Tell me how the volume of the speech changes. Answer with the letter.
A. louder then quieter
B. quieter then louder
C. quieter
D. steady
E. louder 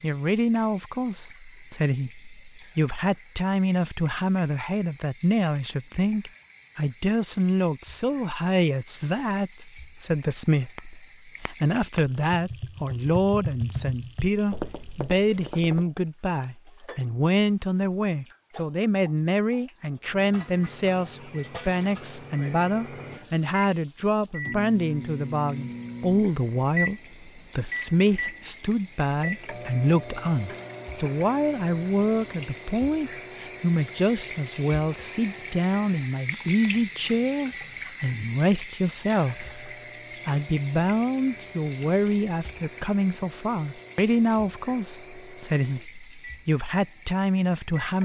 D.